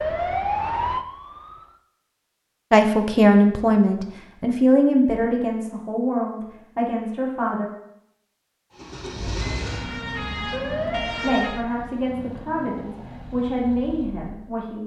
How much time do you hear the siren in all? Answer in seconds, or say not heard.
4 s.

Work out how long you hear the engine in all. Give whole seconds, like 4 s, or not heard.
6 s.